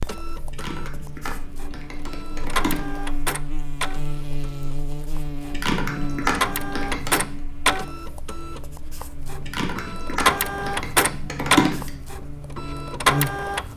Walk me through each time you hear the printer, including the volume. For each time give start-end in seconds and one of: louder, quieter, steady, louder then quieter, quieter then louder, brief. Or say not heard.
0.0-13.7 louder.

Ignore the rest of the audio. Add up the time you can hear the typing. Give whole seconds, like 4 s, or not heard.
7 s.